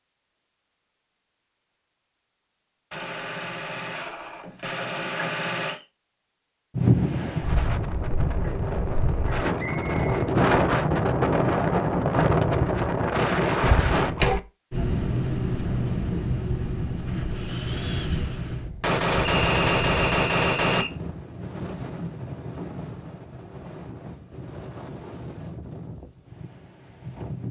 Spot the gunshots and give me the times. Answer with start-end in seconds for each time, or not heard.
2.9-5.8, 18.8-20.9.